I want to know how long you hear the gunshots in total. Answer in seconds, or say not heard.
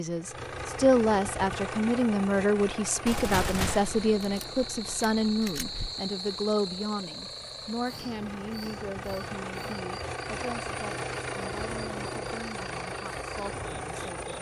3 s.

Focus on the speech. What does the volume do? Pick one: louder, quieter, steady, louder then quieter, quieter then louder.
quieter.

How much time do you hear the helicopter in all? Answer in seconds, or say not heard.
14 s.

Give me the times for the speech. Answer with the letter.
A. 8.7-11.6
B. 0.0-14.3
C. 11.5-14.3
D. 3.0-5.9
B.